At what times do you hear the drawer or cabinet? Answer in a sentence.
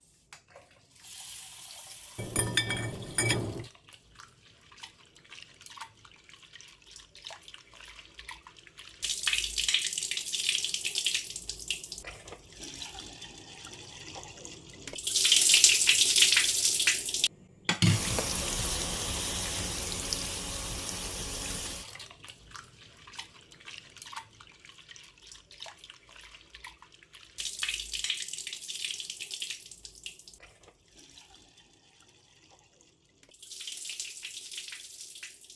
You can't hear the drawer or cabinet here.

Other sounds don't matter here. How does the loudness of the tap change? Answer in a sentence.
The loudness of the tap goes up, then down.